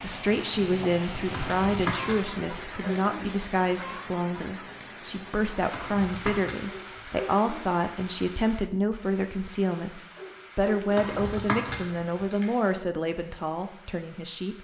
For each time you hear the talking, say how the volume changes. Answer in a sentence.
The talking can be heard from 0.0 to 14.5 s, at a steady volume.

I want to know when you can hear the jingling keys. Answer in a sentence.
You can hear the jingling keys from 1.2 to 3.2 s, from 5.7 to 7.5 s and from 10.9 to 12.5 s.